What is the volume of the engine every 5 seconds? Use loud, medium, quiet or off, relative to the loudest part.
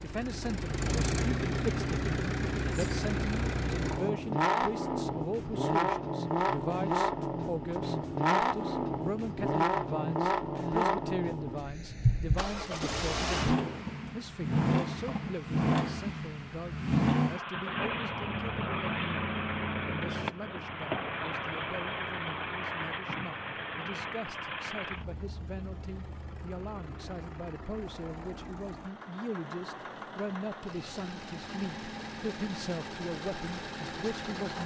loud, loud, loud, loud, medium, quiet, medium.